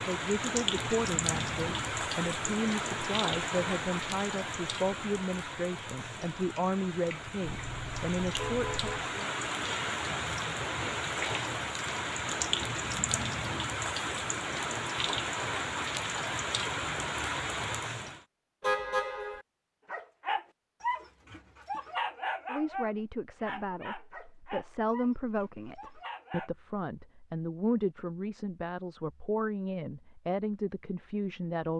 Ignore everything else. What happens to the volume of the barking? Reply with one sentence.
The volume of the barking goes down.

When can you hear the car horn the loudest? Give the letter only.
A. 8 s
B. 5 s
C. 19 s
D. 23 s
C.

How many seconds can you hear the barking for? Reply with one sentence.
The barking can be heard for 7 seconds in total.